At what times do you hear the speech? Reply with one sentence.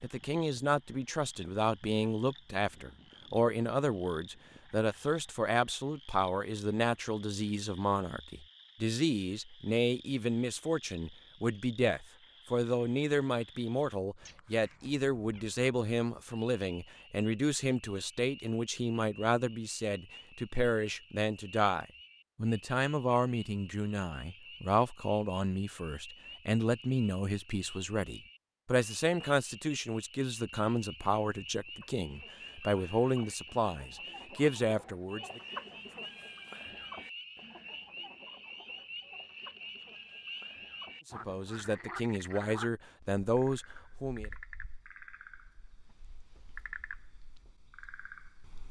The speech can be heard from 0.0 to 35.4 s and from 41.0 to 44.3 s.